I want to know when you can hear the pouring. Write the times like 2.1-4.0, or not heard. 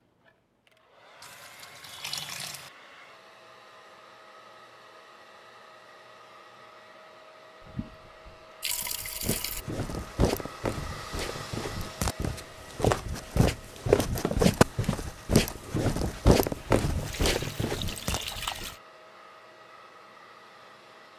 1.2-2.7, 7.6-9.7, 16.6-18.8.